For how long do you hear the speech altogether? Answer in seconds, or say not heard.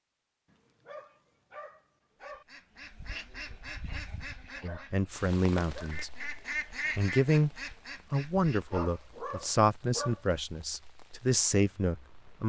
7 s.